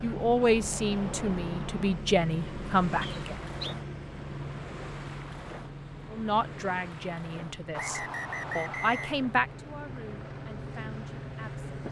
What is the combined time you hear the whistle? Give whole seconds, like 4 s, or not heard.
2 s.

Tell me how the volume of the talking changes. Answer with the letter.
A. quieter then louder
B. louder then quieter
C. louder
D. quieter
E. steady
D.